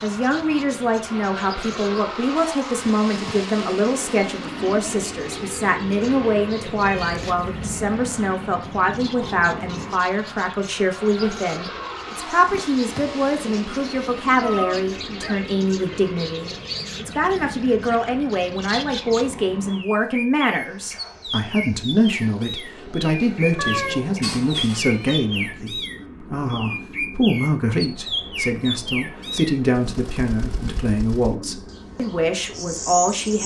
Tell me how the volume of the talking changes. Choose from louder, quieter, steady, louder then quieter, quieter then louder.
steady.